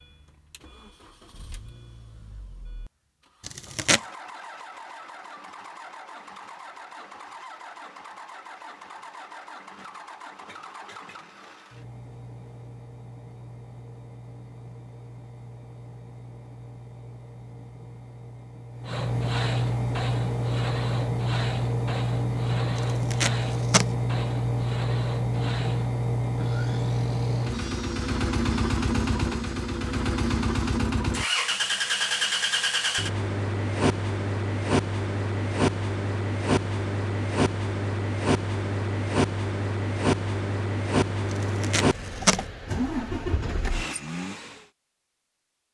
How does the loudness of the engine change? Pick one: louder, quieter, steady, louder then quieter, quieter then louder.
louder.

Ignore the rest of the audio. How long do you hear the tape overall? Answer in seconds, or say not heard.
3 s.